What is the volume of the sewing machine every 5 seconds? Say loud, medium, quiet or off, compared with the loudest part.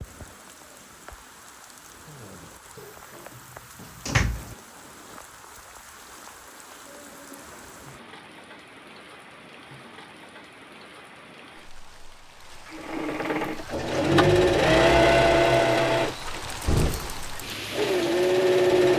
off, off, loud, loud.